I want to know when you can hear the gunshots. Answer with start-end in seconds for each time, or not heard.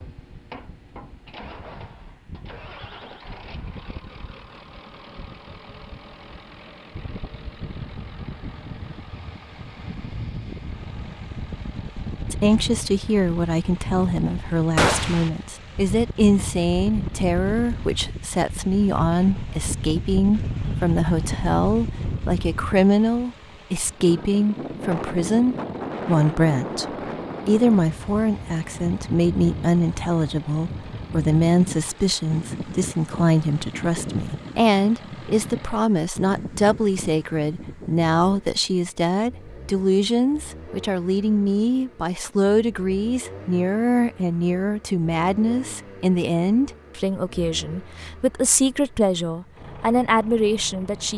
14.8-15.3.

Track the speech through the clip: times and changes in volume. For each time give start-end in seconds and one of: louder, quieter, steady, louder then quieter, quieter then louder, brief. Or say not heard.
12.3-51.1 steady.